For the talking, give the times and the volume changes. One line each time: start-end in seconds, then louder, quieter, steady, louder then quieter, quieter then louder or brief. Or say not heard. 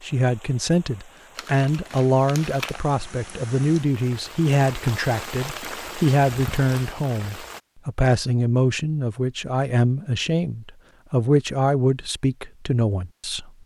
0.0-13.5 steady.